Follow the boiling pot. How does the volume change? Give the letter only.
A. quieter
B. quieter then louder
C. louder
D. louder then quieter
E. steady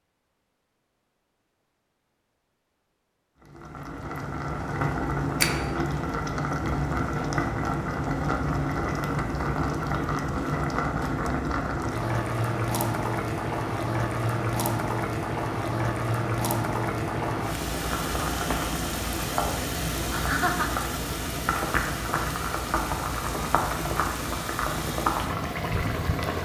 E.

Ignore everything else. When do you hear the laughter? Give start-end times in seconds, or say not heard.
20.1-20.8.